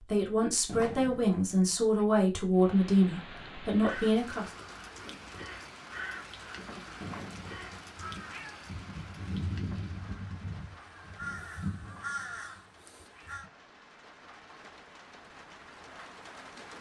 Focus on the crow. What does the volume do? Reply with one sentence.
The loudness of the crow goes up.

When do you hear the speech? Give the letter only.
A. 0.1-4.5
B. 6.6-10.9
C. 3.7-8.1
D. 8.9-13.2
A.